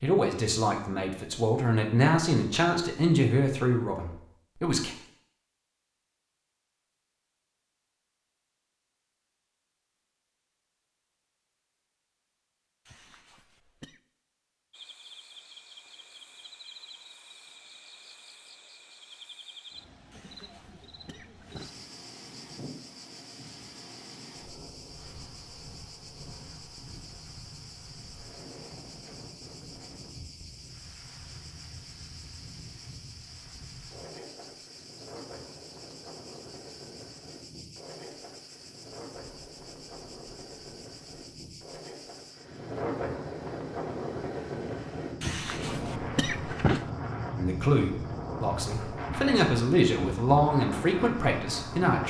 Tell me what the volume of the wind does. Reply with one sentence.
The loudness of the wind goes up.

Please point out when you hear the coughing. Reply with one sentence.
The coughing can be heard from 12.8 to 14.0 s, from 20.1 to 21.8 s and from 45.2 to 46.9 s.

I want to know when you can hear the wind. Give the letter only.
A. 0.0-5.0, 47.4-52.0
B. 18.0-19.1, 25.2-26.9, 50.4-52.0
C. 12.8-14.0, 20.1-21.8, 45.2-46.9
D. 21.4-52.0
D.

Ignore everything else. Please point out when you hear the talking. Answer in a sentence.
The talking can be heard from 0.0 to 5.0 s and from 47.4 to 52.0 s.